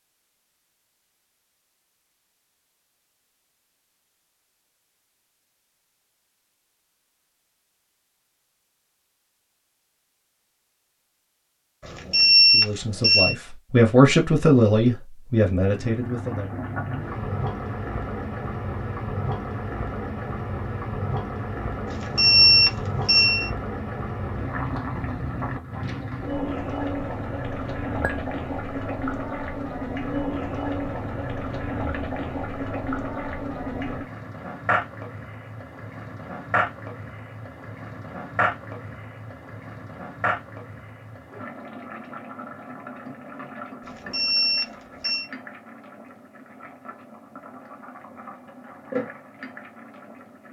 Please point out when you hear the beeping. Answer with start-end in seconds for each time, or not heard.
11.8-13.3, 21.9-23.5, 43.9-45.2.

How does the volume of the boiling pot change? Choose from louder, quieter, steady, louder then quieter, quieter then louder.
quieter.